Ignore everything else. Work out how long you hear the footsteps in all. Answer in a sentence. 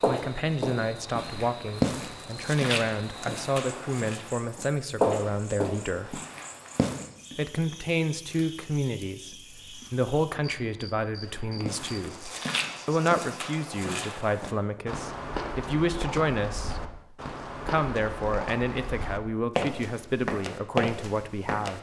You can hear the footsteps for 17 seconds altogether.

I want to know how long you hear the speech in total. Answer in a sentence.
You can hear the speech for 20 seconds altogether.